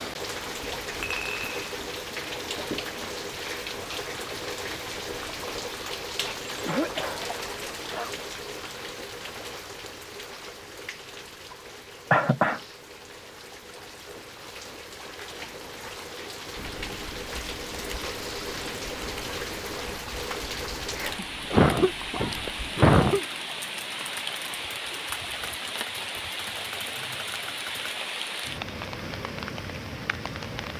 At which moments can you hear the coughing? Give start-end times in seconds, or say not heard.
6.2-8.2, 12.1-12.6, 21.5-23.2.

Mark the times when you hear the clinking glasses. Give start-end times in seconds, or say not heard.
1.0-1.8.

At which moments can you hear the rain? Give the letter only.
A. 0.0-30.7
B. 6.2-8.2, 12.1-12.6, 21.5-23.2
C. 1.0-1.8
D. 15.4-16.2
A.